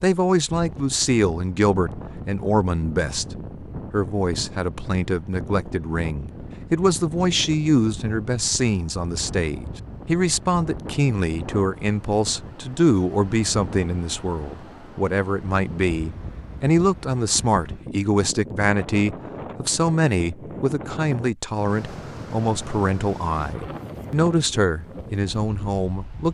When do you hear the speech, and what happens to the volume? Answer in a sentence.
The speech can be heard from 0.0 to 26.3 s, at a steady volume.